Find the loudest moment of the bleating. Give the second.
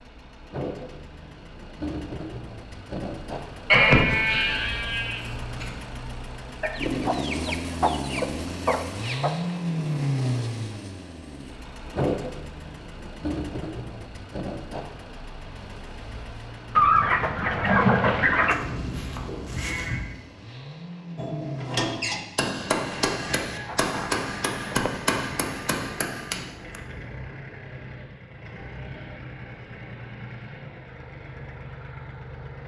4 s.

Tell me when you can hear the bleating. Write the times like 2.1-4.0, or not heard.
3.7-5.7, 18.4-20.1.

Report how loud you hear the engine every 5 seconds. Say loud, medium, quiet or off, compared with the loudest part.
medium, loud, loud, medium, medium, medium, medium.